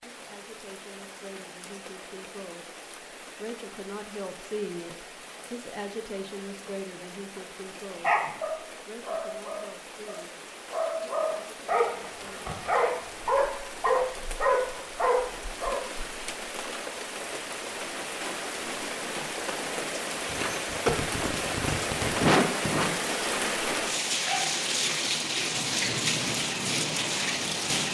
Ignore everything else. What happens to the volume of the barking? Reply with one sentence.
The loudness of the barking goes up.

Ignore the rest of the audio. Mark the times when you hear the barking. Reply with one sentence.
You can hear the barking from 8.0 to 15.8 s.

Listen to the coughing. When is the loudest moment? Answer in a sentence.
The loudest moment of the coughing is at 22 seconds.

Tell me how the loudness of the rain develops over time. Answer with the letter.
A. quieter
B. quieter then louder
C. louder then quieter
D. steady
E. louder
E.